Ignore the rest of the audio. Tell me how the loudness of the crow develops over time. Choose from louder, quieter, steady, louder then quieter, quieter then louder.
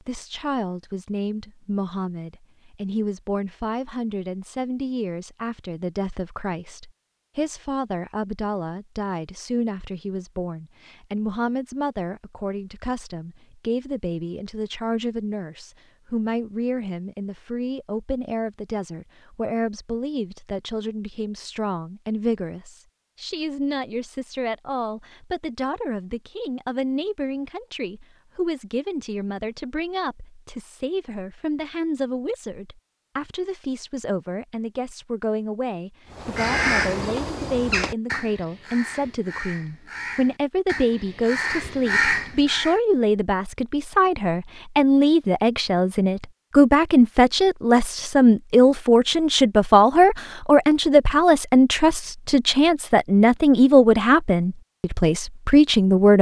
quieter then louder.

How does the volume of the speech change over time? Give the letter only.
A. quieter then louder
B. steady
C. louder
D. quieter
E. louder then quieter
C.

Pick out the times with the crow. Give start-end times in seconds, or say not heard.
36.1-42.8.